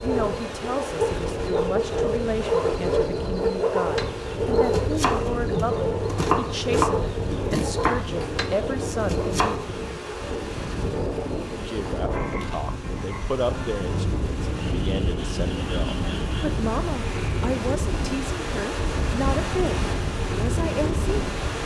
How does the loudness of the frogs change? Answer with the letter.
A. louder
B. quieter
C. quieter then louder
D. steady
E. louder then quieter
B.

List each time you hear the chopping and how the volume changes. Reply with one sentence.
You can hear the chopping from 3.8 to 10.0 s, at a steady volume.